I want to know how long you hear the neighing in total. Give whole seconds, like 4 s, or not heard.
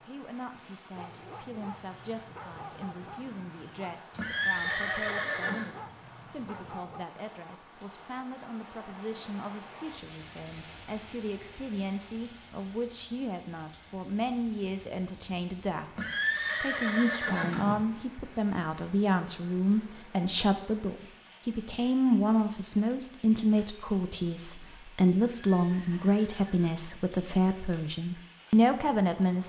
5 s.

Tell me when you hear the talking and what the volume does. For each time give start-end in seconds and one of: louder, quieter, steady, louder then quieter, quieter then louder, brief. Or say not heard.
0.0-29.4 louder.